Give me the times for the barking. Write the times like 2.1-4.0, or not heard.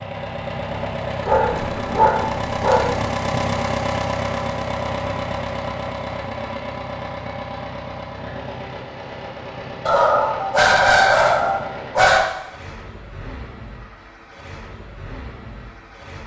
1.2-3.0, 9.8-12.2.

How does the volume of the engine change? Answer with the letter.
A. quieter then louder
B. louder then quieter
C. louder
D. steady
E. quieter
E.